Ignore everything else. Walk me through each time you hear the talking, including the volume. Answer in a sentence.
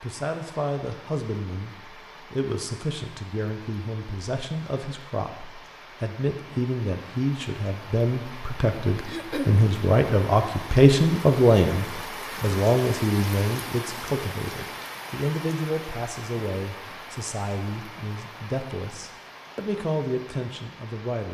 You can hear the talking from 0.0 to 21.2 s, getting louder then quieter.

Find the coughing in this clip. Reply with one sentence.
You can hear the coughing from 9.1 to 9.6 s.